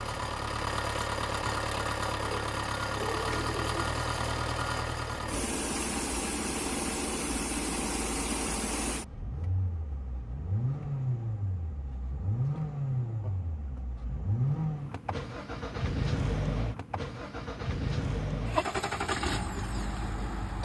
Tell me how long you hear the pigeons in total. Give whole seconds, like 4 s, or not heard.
2 s.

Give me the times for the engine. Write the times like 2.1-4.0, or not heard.
0.0-20.6.